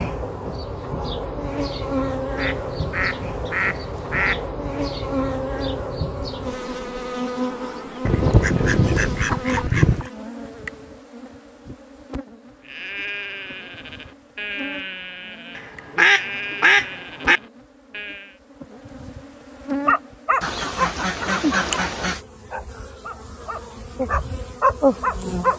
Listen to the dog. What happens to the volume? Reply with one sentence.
The volume of the dog goes down, then up.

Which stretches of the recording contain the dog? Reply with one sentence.
The dog can be heard from 19.9 to 25.5 s.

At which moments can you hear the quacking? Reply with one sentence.
You can hear the quacking from 2.4 to 4.5 s, from 8.1 to 10.1 s, from 15.6 to 17.4 s and from 20.4 to 22.2 s.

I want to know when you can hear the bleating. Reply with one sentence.
The bleating can be heard from 12.6 to 18.4 s.